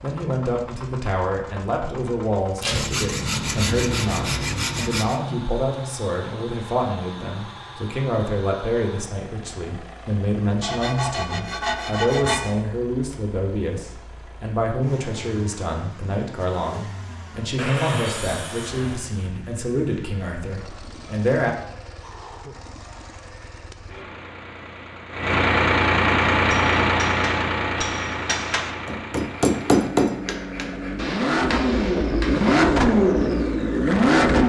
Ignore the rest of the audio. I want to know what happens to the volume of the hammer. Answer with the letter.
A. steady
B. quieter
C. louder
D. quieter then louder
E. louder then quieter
E.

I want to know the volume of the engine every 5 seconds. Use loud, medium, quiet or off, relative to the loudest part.
quiet, quiet, quiet, quiet, quiet, loud, loud.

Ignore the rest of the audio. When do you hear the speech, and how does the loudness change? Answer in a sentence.
The speech can be heard from 0.0 to 21.6 s, at a steady volume.